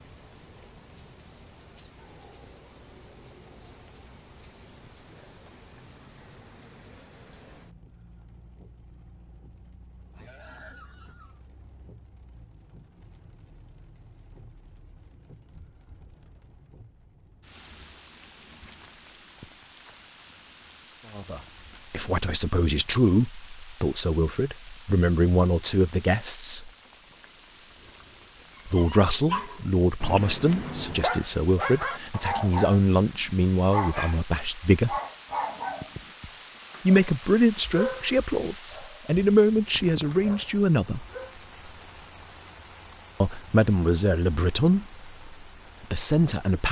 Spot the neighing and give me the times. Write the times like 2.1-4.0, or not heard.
10.1-11.4.